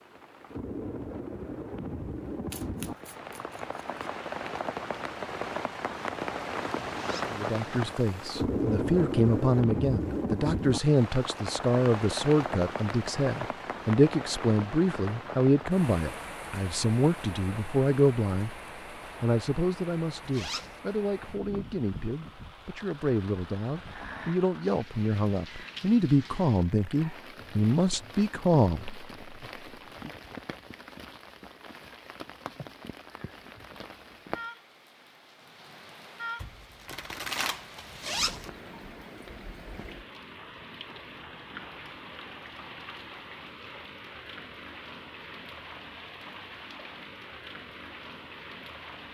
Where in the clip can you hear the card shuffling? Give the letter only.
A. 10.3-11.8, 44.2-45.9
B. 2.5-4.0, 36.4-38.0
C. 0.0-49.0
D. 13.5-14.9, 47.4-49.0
B.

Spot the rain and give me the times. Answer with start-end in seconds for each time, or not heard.
0.0-49.0.